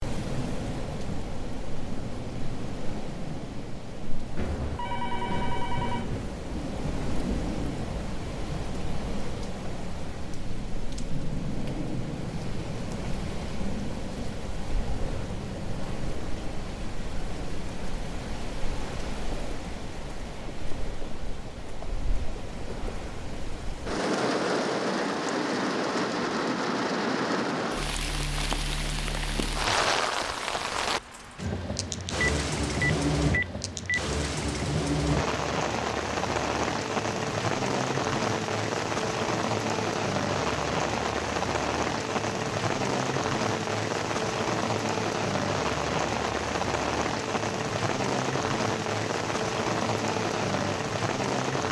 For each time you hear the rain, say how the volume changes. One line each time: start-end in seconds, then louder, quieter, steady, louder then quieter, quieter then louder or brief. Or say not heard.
0.0-51.6 louder.